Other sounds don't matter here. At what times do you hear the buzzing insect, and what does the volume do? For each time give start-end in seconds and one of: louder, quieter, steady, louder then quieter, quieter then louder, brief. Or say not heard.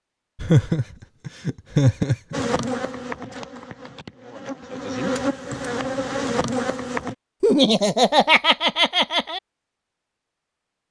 2.3-7.2 quieter then louder.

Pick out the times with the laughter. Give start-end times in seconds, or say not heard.
0.3-2.5, 7.4-9.4.